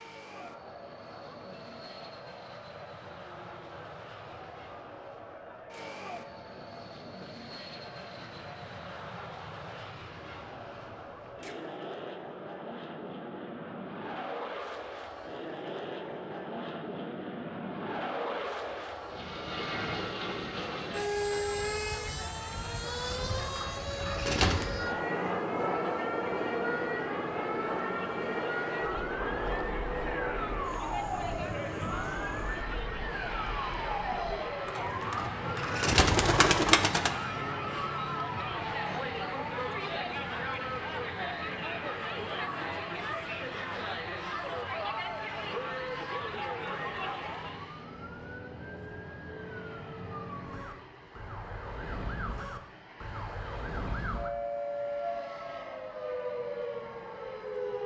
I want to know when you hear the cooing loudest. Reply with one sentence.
The loudest moment of the cooing is at 37 seconds.